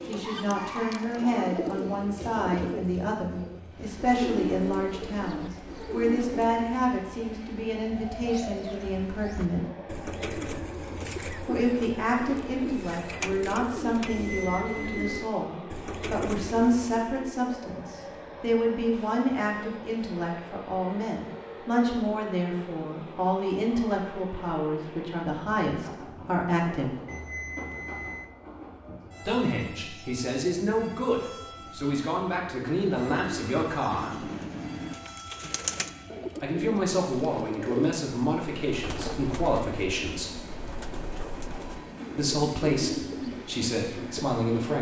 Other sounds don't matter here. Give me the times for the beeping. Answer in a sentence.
You can hear the beeping from 14.1 to 15.2 s and from 27.1 to 28.3 s.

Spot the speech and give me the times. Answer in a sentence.
You can hear the speech from 0.1 to 9.7 s, from 11.4 to 26.9 s, from 29.2 to 34.2 s, from 36.4 to 40.4 s and from 42.1 to 44.7 s.